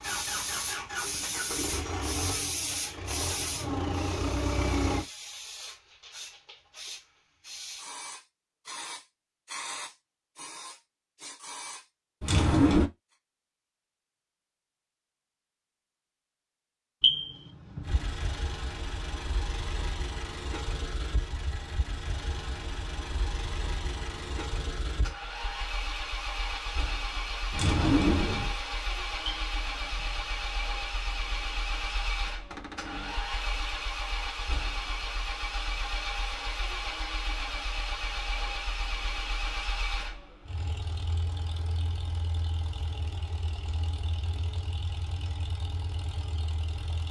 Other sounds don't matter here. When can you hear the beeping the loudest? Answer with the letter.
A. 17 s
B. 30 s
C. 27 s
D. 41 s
A.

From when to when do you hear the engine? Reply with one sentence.
The engine can be heard from 0.0 to 5.0 s and from 17.9 to 47.0 s.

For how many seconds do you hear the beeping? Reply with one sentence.
The beeping can be heard for 2 seconds in total.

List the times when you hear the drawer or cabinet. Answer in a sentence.
The drawer or cabinet can be heard from 12.2 to 12.9 s, from 27.5 to 28.6 s and from 32.5 to 33.2 s.